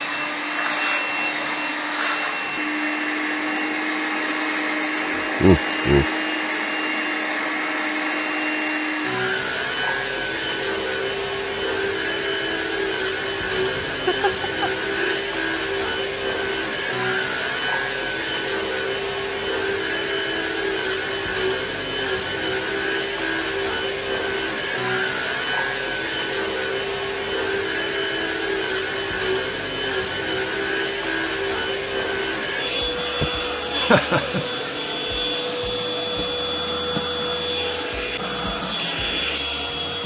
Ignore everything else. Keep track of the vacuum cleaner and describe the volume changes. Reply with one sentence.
The loudness of the vacuum cleaner stays about the same.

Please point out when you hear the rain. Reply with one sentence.
You can't hear the rain here.